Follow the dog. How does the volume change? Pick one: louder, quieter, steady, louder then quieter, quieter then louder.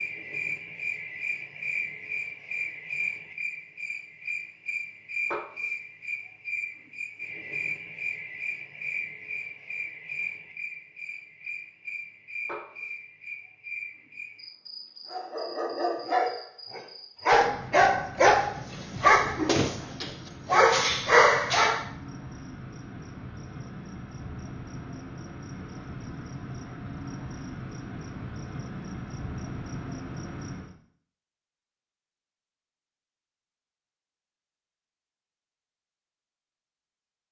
louder.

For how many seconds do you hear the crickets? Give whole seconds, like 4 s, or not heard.
31 s.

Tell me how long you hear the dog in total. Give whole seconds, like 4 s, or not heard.
7 s.